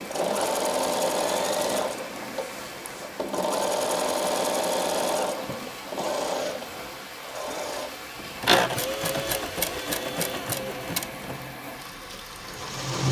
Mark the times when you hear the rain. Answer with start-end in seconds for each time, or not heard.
0.0-12.9.